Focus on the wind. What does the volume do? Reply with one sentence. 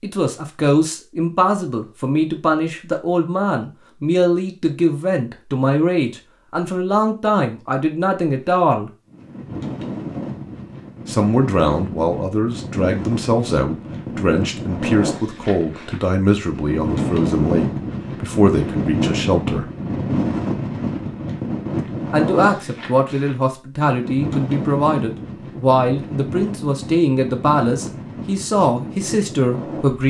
The volume of the wind goes up, then down.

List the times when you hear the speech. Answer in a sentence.
The speech can be heard from 0.0 to 8.9 s, from 11.1 to 19.6 s and from 22.1 to 30.0 s.